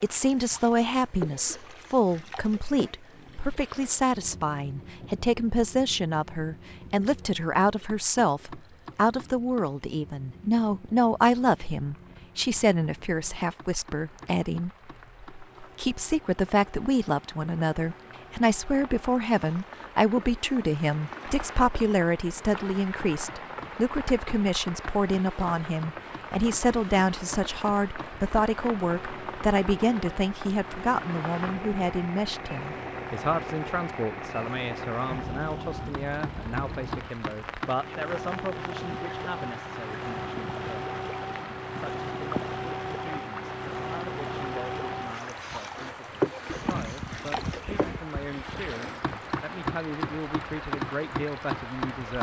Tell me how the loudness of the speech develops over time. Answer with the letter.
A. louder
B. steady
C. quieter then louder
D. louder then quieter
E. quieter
E.